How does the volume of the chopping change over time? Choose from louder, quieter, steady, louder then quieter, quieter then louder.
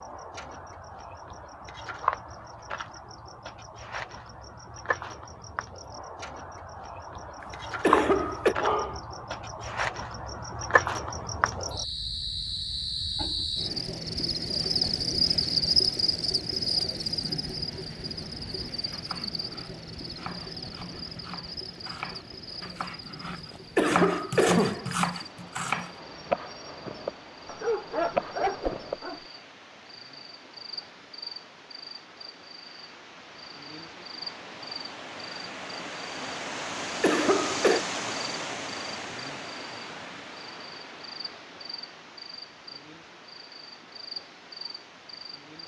louder.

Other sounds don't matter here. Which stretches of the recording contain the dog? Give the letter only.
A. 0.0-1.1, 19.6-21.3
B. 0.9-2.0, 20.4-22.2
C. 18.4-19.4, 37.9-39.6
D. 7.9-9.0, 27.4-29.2
D.